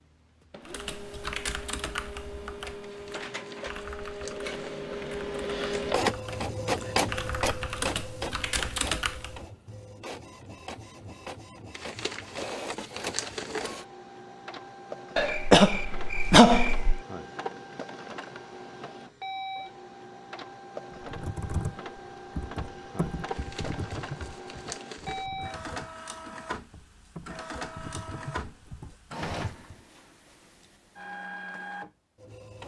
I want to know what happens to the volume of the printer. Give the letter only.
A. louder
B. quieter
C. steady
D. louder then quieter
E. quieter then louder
B.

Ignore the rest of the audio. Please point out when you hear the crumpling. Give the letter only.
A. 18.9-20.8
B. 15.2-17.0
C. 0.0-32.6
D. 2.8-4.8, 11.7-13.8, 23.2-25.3
D.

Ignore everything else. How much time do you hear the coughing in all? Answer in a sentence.
The coughing can be heard for 2 seconds in total.